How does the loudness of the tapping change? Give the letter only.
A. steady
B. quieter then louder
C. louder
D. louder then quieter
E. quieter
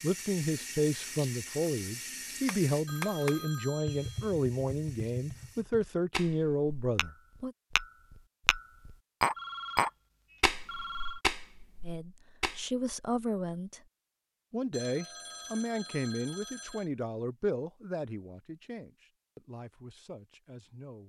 D.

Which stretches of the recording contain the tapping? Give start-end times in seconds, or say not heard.
2.5-12.7.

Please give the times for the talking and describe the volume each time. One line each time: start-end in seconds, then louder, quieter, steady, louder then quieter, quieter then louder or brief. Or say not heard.
0.0-7.5 steady
11.8-13.8 brief
14.5-21.0 quieter.